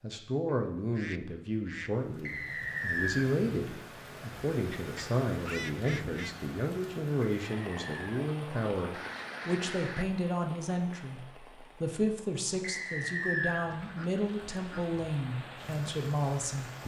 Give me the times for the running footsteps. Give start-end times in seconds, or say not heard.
not heard.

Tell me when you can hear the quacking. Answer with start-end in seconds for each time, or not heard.
0.5-1.9, 4.7-6.3, 8.9-10.1, 13.7-14.9.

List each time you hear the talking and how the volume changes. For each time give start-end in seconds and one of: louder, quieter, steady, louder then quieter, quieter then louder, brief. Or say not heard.
0.0-16.8 steady.